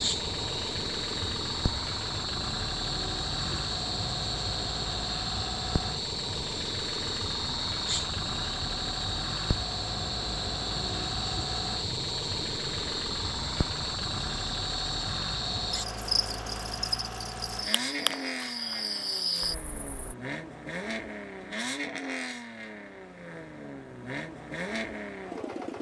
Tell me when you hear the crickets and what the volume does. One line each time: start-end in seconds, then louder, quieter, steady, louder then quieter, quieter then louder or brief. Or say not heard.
0.0-20.1 steady.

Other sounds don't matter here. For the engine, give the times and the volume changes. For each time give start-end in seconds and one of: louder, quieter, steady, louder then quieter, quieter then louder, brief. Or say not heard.
0.0-25.7 steady.